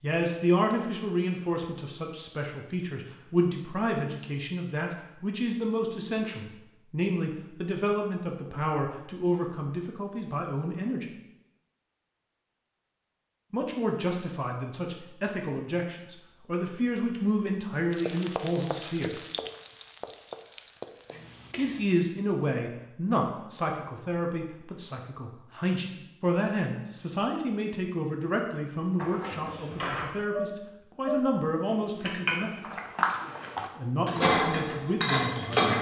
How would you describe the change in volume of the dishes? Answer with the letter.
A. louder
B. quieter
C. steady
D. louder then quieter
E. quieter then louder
A.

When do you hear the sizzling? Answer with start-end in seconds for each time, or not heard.
17.9-22.0.